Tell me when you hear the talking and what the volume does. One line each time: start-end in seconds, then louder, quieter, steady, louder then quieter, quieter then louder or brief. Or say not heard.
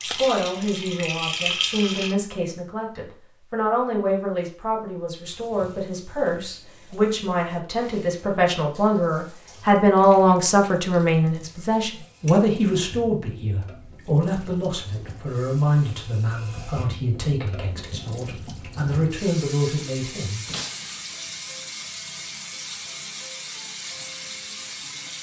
0.0-20.4 louder then quieter.